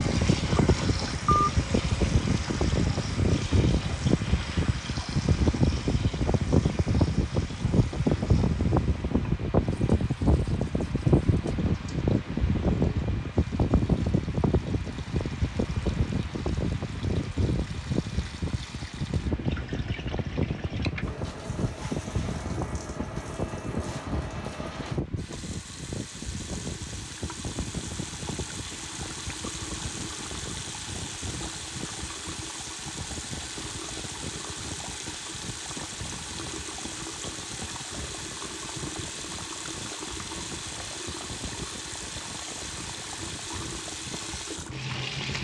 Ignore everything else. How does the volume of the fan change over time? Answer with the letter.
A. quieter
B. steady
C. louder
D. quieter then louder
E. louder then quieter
A.